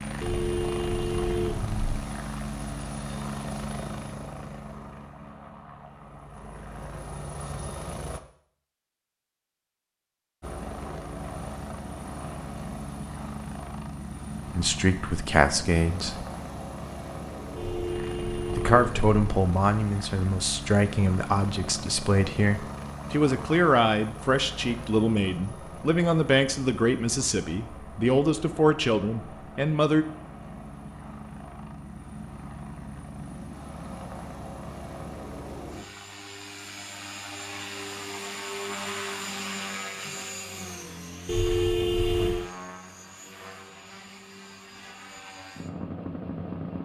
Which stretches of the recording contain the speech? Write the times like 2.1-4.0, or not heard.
14.6-16.2, 18.6-30.1.